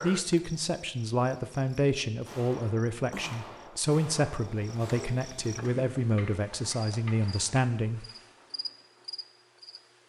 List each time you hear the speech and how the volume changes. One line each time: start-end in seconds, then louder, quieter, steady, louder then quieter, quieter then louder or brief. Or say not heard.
0.0-8.1 steady.